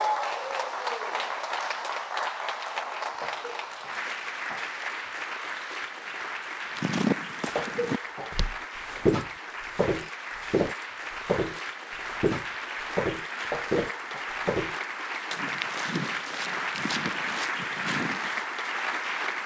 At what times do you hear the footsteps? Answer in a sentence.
You can hear the footsteps from 6.8 to 18.4 s.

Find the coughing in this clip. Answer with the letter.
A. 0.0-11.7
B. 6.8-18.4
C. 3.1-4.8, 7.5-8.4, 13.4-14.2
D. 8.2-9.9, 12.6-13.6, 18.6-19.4
C.